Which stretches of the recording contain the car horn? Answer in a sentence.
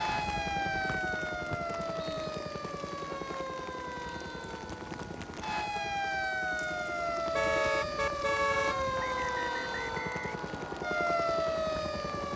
The car horn can be heard from 7.3 to 8.8 s.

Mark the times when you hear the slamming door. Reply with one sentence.
The slamming door can't be heard in this clip.